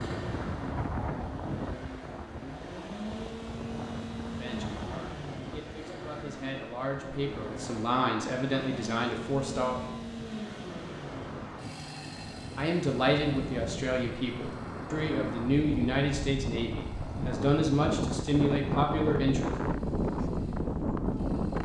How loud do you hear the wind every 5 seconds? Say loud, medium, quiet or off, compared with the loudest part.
medium, quiet, medium, loud, loud.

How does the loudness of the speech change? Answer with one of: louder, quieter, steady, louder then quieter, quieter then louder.
louder.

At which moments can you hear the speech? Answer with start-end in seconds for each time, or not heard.
4.2-9.8, 12.6-19.5.